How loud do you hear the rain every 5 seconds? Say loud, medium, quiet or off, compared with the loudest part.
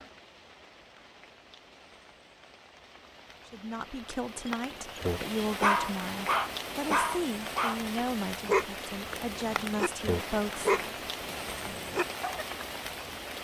medium, loud, loud.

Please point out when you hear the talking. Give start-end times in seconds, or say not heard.
3.5-10.9.